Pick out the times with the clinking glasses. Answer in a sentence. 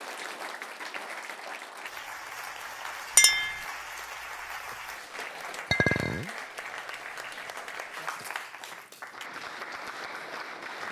You can hear the clinking glasses from 3.1 to 3.6 s and from 5.7 to 6.3 s.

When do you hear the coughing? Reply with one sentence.
You can't hear the coughing here.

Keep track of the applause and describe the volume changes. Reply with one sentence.
The volume of the applause stays about the same.